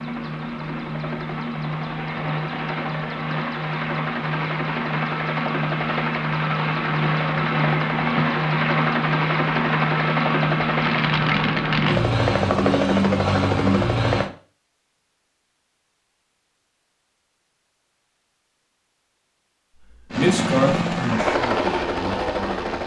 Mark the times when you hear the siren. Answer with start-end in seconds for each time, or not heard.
not heard.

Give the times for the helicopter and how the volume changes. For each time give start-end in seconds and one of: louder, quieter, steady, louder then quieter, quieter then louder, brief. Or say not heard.
0.0-14.3 louder
20.1-22.8 brief.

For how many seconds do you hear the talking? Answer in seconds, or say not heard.
3 s.